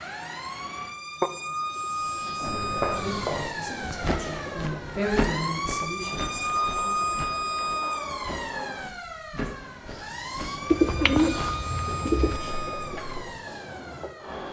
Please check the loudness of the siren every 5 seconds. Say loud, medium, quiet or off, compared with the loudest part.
loud, loud, medium.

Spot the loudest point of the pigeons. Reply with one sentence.
The volume of the pigeons peaks at 11 seconds.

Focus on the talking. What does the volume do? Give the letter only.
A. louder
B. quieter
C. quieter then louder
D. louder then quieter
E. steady
D.